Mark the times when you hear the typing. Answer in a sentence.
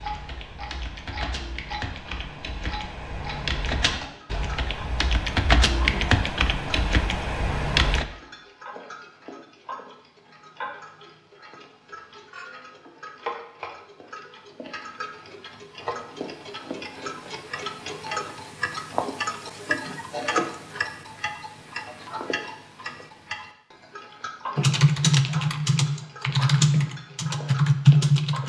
The typing can be heard from 0.0 to 8.1 s and from 24.6 to 28.4 s.